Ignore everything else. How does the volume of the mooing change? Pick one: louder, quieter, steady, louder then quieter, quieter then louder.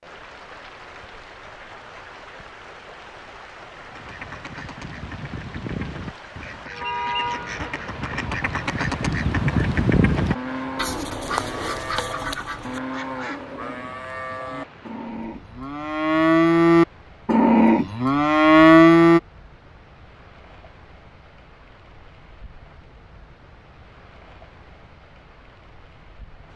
louder.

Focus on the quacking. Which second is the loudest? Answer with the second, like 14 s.
10 s.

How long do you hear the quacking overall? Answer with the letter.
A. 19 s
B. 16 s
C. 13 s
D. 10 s
D.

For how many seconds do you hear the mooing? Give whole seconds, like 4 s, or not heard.
9 s.